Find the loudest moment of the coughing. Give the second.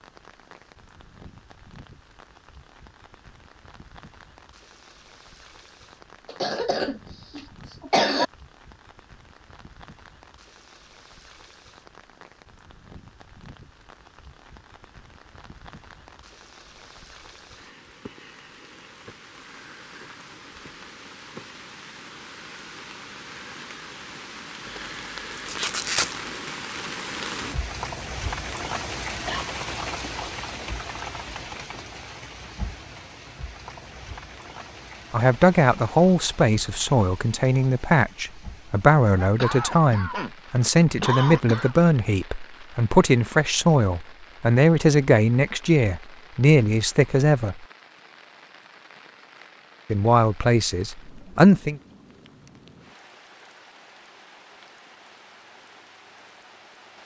8 s.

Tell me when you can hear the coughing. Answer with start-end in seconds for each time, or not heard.
6.2-8.2, 29.2-29.9, 39.4-40.3, 41.0-41.8.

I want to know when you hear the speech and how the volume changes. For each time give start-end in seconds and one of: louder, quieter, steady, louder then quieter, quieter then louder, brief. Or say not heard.
35.1-47.6 steady
49.9-51.8 brief.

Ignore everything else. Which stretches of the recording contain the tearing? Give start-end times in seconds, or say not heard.
24.6-26.2.